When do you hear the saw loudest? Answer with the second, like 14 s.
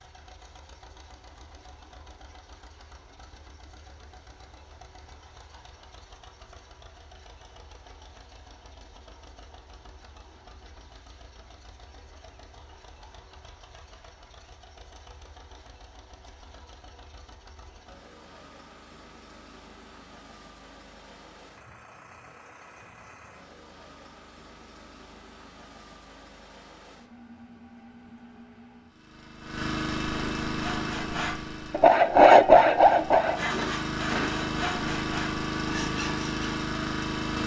32 s.